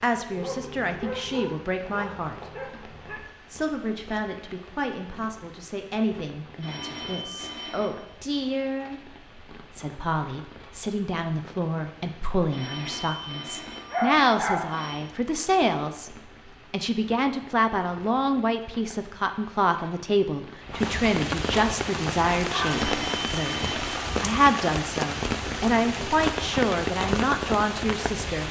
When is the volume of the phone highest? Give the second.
23 s.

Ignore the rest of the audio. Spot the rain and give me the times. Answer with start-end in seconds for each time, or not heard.
0.0-28.4.